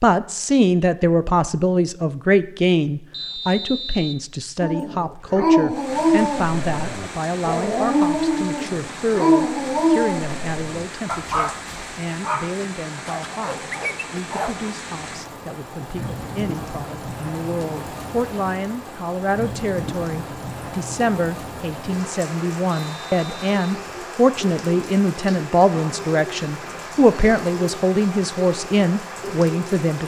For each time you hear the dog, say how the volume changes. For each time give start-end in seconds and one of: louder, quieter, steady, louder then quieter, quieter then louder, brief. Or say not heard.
4.6-14.8 quieter.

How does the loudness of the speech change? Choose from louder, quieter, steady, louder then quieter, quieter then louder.
quieter then louder.